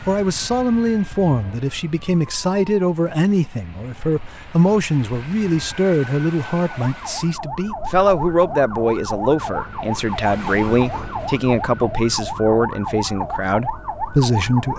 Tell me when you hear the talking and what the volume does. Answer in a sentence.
The talking can be heard from 0.0 to 14.7 s, at a steady volume.